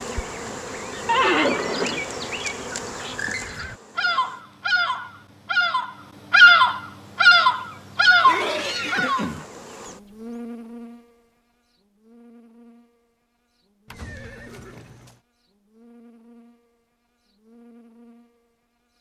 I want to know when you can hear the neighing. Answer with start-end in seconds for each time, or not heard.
1.1-2.1, 8.2-9.9, 13.8-15.2.